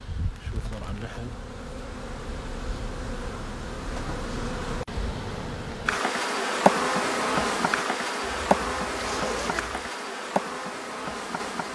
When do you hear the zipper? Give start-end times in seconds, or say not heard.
8.2-9.9.